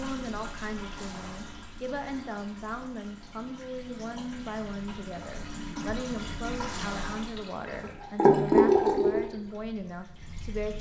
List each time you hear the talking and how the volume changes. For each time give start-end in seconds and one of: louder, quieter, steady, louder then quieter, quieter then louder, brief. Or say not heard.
0.0-10.7 steady.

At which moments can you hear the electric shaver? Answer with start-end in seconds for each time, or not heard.
not heard.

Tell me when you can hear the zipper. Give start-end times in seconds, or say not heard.
0.8-1.6, 6.5-7.4.